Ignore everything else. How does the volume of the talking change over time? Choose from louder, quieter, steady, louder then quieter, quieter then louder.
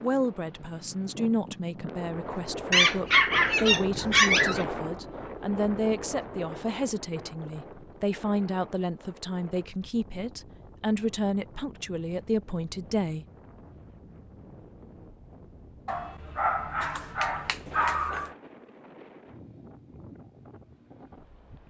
steady.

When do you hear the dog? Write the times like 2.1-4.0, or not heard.
2.7-4.7, 15.8-18.4.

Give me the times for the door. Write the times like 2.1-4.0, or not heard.
not heard.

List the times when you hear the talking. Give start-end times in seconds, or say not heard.
0.0-13.2.